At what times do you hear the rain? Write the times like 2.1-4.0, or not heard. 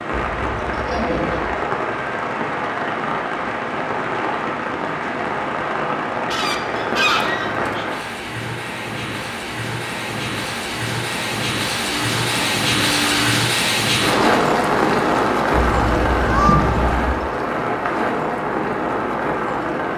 0.0-19.9.